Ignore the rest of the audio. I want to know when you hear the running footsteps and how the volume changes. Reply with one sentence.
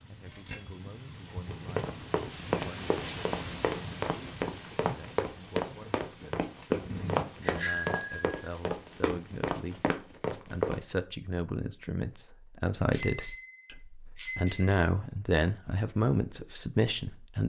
The running footsteps can be heard from 1.5 to 10.8 s, at a steady volume.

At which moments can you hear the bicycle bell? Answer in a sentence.
The bicycle bell can be heard from 0.2 to 1.6 s, from 6.9 to 8.5 s and from 12.9 to 14.9 s.